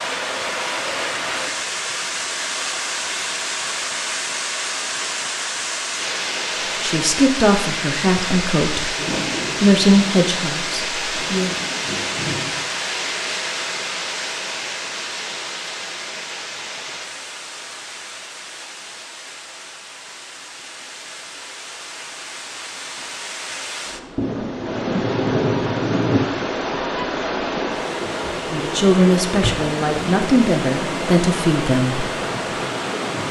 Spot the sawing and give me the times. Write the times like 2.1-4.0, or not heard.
not heard.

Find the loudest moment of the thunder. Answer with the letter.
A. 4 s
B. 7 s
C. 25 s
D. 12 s
C.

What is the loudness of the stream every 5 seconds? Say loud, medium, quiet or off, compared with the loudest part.
loud, loud, loud, medium, medium, loud, loud.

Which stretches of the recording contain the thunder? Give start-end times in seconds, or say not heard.
8.9-12.6, 24.1-26.2.